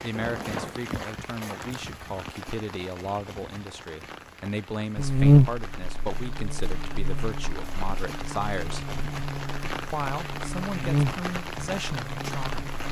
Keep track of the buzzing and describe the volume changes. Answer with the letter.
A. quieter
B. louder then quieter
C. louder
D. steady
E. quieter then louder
E.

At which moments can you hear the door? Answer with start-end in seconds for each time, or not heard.
0.1-0.9.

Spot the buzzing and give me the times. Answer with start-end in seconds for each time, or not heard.
5.0-12.8.